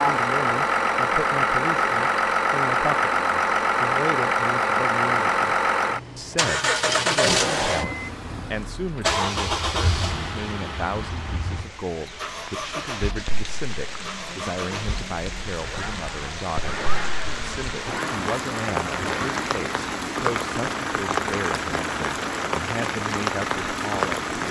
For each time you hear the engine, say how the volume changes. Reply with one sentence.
You can hear the engine from 0.0 to 24.4 s, getting quieter.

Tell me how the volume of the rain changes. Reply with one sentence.
The loudness of the rain goes up.